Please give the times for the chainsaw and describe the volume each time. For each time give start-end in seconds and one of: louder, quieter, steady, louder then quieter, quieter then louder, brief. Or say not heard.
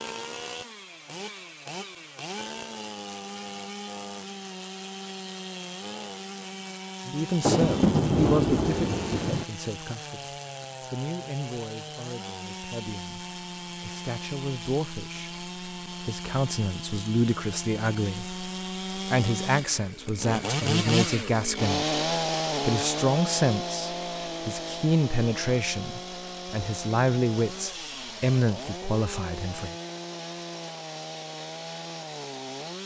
0.0-32.8 louder then quieter.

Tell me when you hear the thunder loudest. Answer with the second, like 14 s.
8 s.